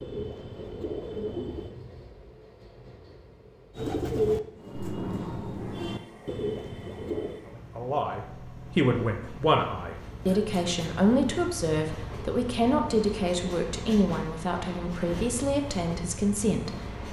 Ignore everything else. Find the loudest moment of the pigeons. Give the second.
4 s.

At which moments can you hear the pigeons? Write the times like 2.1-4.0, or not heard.
0.0-1.8, 3.8-7.4.